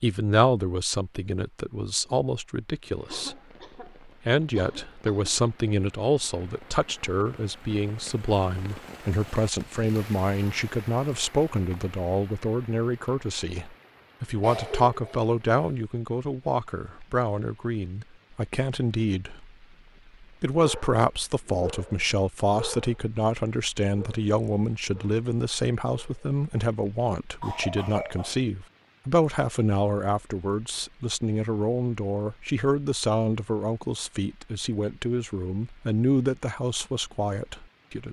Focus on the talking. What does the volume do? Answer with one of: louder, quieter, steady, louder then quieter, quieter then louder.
steady.